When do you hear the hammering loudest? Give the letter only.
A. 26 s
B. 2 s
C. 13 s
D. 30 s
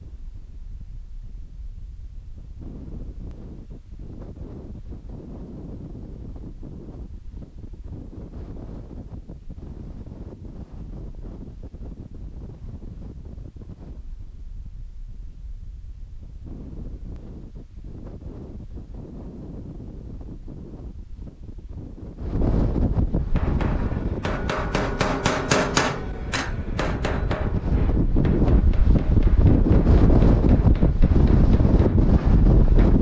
A.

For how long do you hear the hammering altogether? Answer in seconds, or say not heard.
10 s.